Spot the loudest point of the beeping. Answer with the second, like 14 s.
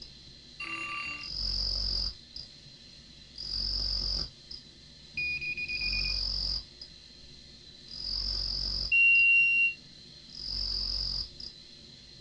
9 s.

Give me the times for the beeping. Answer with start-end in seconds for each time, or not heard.
0.6-1.3, 5.2-6.2, 8.9-9.7.